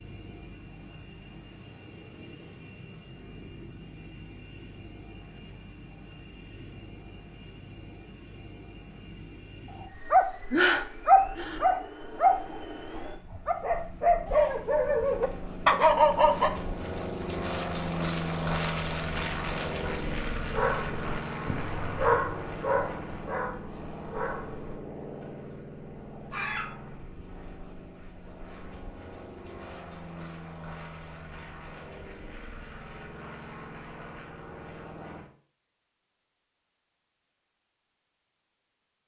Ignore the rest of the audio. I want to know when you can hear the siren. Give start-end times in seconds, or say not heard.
not heard.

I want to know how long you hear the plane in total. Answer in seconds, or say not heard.
35 s.